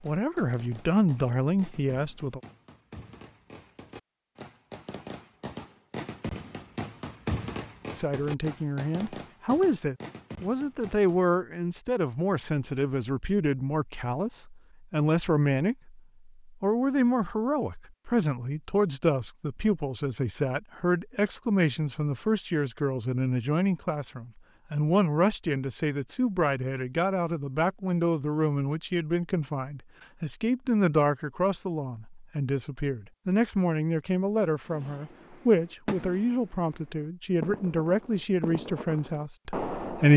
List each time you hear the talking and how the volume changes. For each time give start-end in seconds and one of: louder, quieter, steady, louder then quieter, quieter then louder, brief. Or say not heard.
0.0-2.4 brief
8.0-40.1 steady.